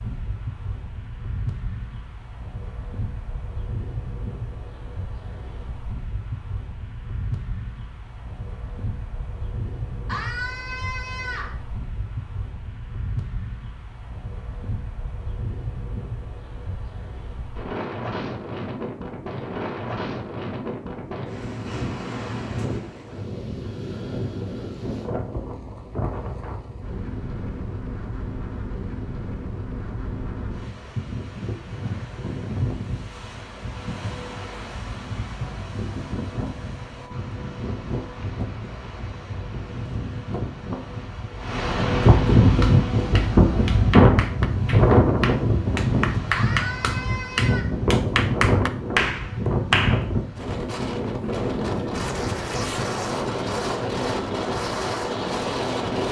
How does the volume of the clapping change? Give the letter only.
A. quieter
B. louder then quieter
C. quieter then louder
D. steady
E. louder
E.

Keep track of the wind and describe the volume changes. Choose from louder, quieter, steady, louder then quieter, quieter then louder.
louder.